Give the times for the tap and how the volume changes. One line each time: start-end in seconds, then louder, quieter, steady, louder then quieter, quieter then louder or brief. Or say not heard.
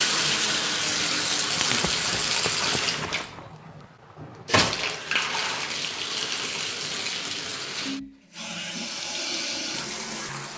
0.0-10.5 quieter.